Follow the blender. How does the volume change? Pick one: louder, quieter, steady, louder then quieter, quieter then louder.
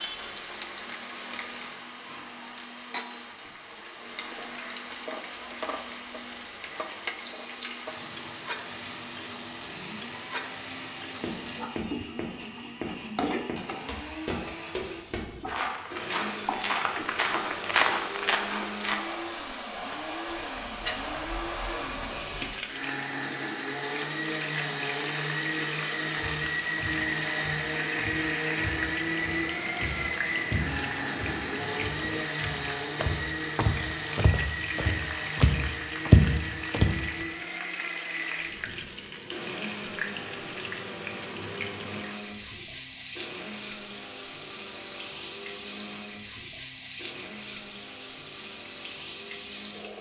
louder then quieter.